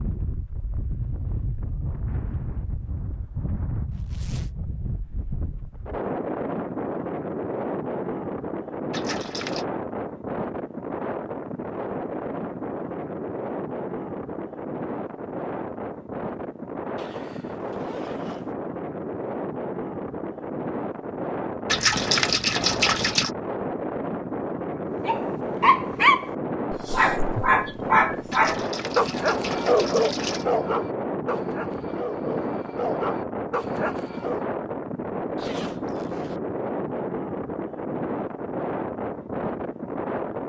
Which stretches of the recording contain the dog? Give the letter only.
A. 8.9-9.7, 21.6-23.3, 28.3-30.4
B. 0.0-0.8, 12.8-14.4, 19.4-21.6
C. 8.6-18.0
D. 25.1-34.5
D.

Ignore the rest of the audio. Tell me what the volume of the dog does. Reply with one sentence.
The loudness of the dog goes down.